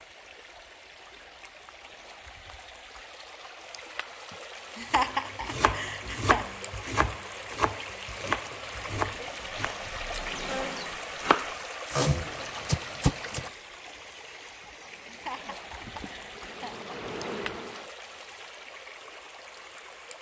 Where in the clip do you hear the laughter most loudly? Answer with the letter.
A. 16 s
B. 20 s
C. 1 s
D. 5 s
D.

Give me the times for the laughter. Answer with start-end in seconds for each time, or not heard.
4.3-6.5, 15.1-16.9.